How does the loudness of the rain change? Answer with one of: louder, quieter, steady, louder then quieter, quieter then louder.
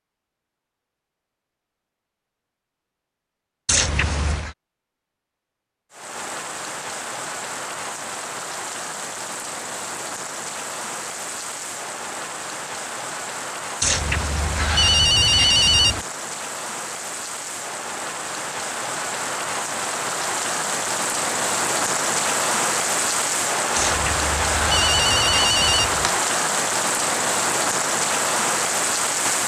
louder.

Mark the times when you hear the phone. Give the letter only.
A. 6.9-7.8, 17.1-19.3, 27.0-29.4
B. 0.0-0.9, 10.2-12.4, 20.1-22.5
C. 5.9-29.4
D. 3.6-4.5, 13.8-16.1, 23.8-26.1
D.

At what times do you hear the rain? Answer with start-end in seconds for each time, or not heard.
5.9-29.4.